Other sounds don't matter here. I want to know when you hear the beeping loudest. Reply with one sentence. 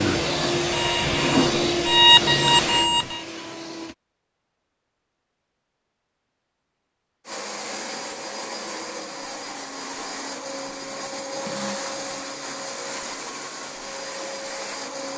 The loudest moment of the beeping is at 2 seconds.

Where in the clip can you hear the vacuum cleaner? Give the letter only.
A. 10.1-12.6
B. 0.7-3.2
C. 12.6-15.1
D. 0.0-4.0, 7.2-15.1
D.